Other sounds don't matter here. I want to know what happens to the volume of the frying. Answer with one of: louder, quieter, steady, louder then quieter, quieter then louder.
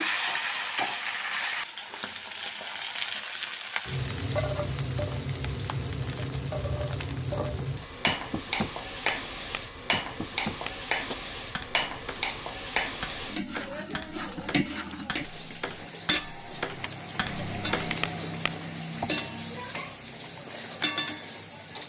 steady.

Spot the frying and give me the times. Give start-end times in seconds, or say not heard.
0.0-21.8.